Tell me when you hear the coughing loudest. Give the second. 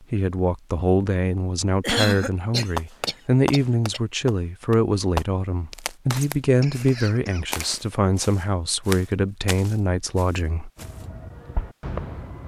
2 s.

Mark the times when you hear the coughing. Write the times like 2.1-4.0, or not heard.
1.8-4.0, 6.6-7.5.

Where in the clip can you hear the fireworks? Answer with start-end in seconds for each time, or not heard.
2.8-5.2, 10.8-12.4.